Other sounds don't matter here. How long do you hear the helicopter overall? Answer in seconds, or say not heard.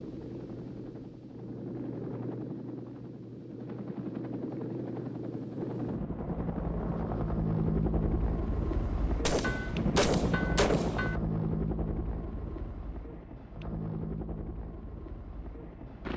16 s.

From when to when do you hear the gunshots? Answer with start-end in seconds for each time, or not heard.
9.2-11.2.